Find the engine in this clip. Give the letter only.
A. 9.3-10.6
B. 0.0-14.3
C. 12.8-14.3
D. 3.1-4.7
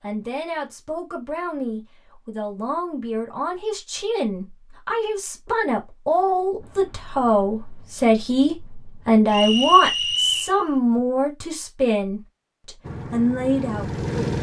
C.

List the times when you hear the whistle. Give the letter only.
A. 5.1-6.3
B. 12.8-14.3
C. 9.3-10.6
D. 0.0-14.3
C.